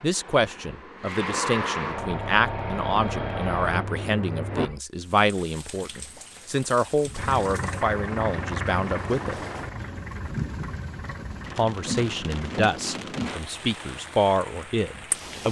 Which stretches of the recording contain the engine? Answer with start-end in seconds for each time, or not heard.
0.0-4.8, 7.1-12.6.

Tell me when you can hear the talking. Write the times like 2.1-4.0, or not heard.
0.0-9.4, 11.6-15.4.